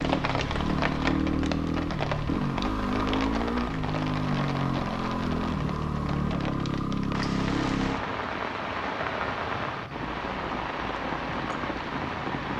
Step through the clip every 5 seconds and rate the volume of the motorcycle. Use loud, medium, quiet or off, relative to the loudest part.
loud, loud, quiet.